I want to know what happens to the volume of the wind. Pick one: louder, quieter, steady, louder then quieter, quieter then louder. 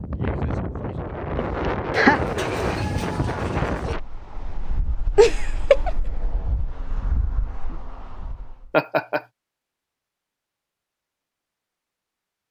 quieter.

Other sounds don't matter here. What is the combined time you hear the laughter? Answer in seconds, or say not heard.
2 s.